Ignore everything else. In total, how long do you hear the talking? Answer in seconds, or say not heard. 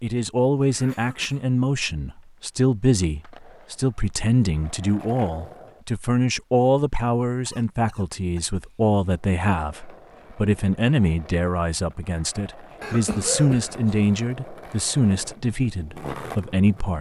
17 s.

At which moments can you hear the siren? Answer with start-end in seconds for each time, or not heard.
not heard.